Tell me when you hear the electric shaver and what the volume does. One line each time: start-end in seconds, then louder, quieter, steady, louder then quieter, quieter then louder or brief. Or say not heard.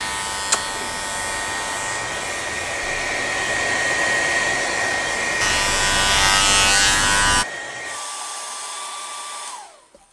0.0-7.5 quieter then louder.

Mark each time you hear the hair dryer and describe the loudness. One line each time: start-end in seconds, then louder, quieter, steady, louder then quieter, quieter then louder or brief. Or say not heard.
0.0-10.0 louder then quieter.